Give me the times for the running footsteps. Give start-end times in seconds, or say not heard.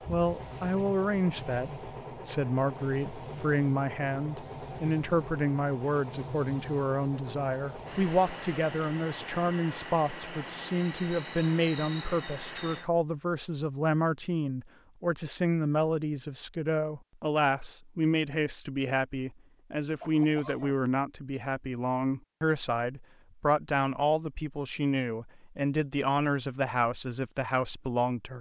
not heard.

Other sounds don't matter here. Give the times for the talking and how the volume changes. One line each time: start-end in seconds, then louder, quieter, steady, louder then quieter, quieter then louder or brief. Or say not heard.
0.1-28.3 steady.